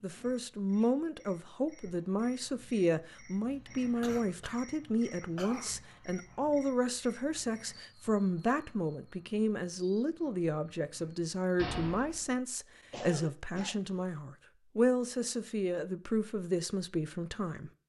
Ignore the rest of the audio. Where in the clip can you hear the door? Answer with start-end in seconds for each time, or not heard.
11.6-12.2.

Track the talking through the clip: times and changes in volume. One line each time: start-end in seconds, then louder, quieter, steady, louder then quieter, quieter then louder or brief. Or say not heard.
0.0-17.7 steady.